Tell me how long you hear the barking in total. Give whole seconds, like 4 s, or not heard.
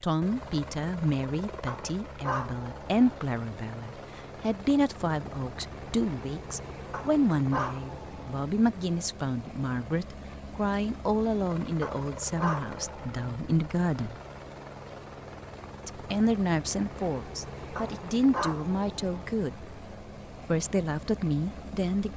6 s.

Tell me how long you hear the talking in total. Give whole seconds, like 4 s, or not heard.
20 s.